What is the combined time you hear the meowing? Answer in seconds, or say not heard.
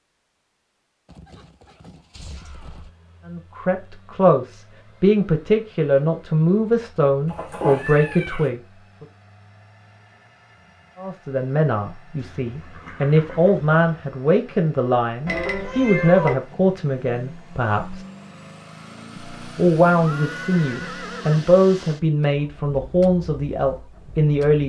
2 s.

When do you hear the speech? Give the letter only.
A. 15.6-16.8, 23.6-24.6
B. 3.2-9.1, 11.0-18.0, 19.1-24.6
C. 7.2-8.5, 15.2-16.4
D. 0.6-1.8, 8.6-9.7
B.